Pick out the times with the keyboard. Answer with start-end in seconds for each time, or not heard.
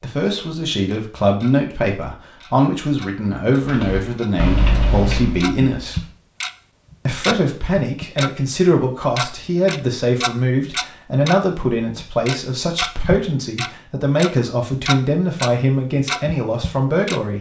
3.6-6.2.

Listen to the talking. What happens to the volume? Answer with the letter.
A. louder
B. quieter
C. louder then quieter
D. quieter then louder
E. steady
E.